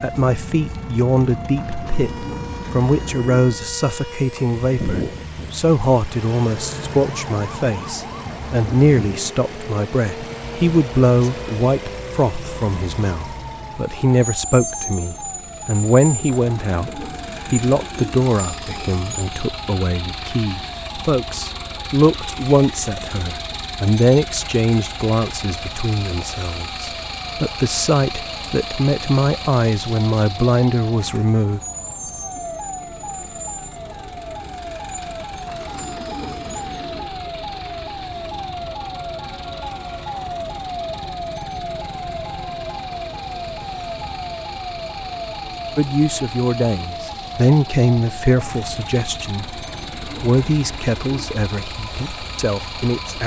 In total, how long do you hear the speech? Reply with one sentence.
The speech can be heard for 39 seconds in total.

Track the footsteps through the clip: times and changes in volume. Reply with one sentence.
The footsteps can't be heard in this clip.